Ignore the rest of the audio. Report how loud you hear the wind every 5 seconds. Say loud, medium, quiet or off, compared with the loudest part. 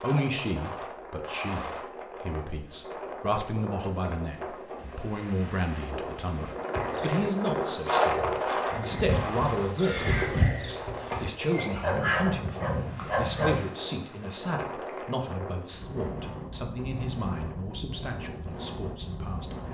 medium, loud, medium, medium.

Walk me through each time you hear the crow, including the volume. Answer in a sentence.
The crow can be heard from 6.8 to 12.2 s, getting louder then quieter.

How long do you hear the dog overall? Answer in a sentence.
You can hear the dog for 2 seconds altogether.